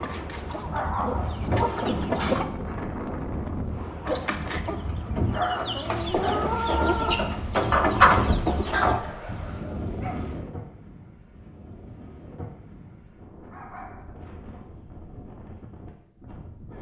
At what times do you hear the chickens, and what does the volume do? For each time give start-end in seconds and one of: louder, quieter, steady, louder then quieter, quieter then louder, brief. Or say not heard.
0.0-2.5 brief
4.0-9.0 louder.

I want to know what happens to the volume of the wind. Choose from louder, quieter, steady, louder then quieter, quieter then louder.
quieter.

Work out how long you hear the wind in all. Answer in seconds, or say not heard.
17 s.